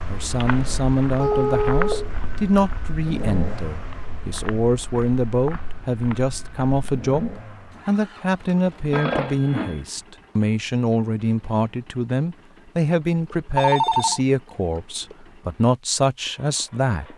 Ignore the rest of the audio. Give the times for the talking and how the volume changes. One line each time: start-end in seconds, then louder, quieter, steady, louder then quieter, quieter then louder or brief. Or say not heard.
0.1-17.1 steady.